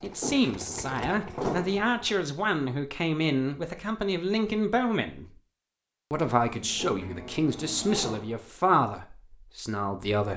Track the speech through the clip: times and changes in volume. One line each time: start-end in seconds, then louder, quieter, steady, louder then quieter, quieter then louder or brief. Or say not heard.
0.0-5.2 steady
6.1-10.3 louder then quieter.